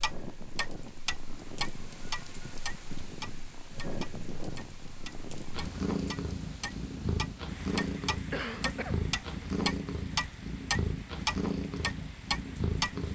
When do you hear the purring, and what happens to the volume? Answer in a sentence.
You can hear the purring from 0.1 to 13.1 s, getting louder.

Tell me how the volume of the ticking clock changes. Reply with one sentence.
The volume of the ticking clock goes down, then up.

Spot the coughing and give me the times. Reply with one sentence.
The coughing can be heard from 8.3 to 9.4 s.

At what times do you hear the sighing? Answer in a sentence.
You can't hear the sighing here.